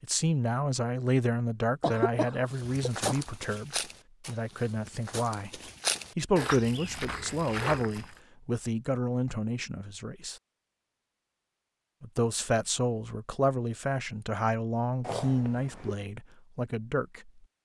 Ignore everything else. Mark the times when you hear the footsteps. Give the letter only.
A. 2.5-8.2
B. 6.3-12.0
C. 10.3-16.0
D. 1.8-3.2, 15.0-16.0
A.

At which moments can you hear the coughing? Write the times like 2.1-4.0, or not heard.
1.8-3.2, 15.0-16.0.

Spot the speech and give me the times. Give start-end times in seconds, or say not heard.
0.0-10.3, 12.0-17.3.